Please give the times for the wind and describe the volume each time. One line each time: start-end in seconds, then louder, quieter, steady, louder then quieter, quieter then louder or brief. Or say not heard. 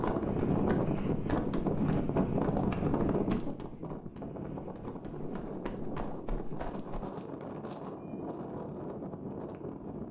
0.0-10.0 quieter.